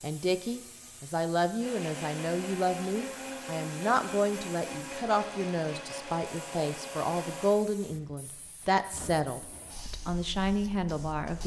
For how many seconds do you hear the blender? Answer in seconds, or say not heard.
6 s.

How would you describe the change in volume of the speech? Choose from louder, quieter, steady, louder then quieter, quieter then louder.
steady.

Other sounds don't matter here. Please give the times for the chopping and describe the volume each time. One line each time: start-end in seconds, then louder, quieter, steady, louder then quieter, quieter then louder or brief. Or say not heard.
not heard.